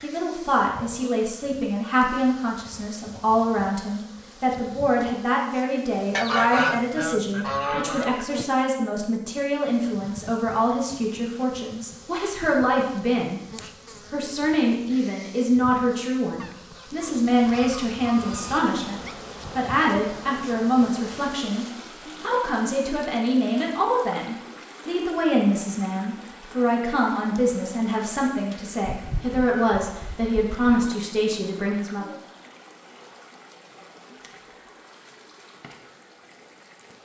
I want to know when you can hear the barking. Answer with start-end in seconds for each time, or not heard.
not heard.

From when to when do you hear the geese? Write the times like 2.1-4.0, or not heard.
6.1-8.2, 16.4-19.1, 28.9-30.9.